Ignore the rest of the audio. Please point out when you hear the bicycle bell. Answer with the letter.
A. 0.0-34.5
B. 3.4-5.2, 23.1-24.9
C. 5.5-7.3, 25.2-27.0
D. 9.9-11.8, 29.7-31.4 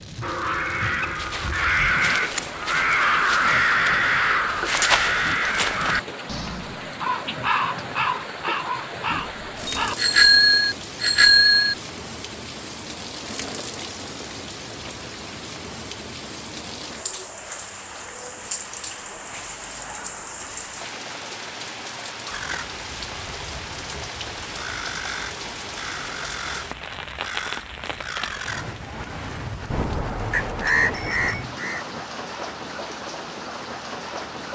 D.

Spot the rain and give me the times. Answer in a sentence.
The rain can be heard from 0.0 to 34.5 s.